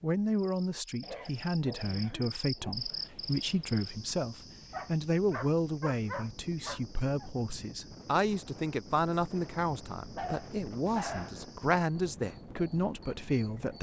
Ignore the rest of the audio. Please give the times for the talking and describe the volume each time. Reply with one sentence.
The talking can be heard from 0.0 to 13.7 s, at a steady volume.